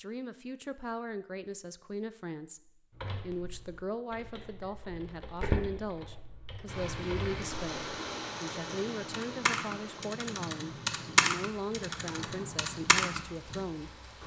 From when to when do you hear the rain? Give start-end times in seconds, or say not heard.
6.7-14.2.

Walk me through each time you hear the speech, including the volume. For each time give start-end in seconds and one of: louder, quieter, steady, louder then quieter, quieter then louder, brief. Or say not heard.
0.0-14.1 steady.